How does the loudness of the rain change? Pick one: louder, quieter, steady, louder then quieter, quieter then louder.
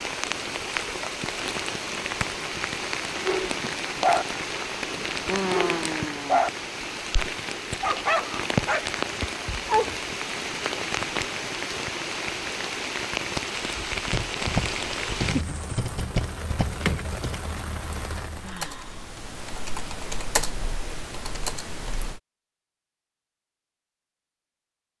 steady.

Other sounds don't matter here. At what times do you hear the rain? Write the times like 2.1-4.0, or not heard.
0.0-18.6.